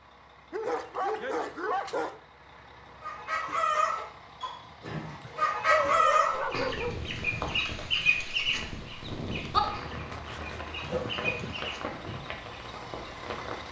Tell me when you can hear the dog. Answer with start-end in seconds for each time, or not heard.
0.5-2.2, 5.2-7.2, 10.1-11.4.